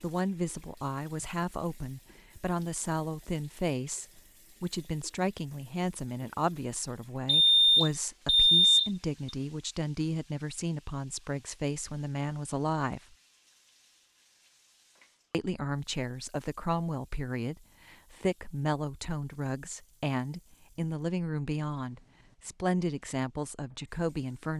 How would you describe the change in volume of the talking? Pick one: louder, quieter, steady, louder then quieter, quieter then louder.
steady.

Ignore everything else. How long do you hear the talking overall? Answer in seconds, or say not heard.
22 s.